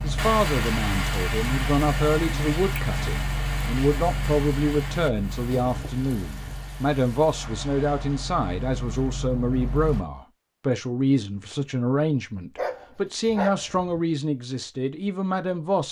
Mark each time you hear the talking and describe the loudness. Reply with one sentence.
The talking can be heard from 0.0 to 15.8 s, at a steady volume.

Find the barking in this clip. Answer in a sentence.
You can hear the barking from 12.6 to 14.0 s.